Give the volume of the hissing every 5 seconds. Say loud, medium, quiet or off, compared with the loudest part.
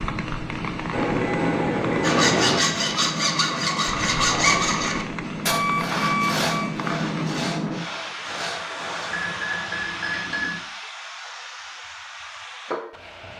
loud, loud, medium.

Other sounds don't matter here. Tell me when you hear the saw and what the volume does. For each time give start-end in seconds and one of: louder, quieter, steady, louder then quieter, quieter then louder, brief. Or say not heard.
2.0-9.2 quieter.